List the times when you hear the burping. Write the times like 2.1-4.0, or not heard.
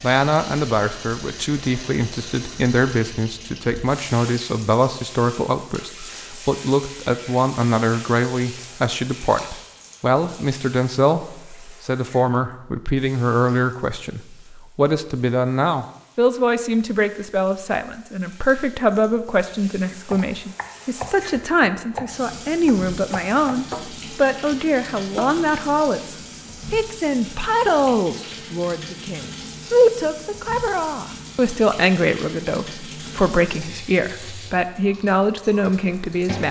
not heard.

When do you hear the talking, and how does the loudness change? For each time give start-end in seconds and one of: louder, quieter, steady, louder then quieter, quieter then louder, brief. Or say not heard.
0.0-36.4 steady.